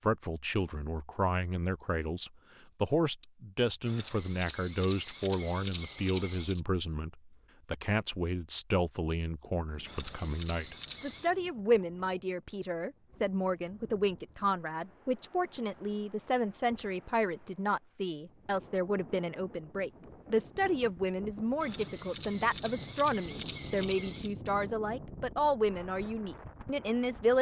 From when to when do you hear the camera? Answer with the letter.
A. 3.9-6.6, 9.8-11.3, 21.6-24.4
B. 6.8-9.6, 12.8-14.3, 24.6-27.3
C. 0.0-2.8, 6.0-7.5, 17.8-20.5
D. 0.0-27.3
A.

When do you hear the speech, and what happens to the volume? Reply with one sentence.
The speech can be heard from 0.0 to 27.3 s, at a steady volume.